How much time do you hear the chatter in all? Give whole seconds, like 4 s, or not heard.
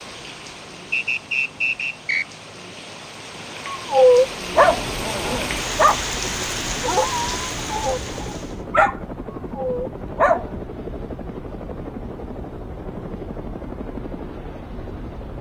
not heard.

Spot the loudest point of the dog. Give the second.
4 s.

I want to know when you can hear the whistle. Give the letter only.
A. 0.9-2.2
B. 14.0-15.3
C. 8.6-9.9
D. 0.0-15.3
A.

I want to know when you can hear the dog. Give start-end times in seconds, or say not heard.
3.9-6.0, 6.8-10.6.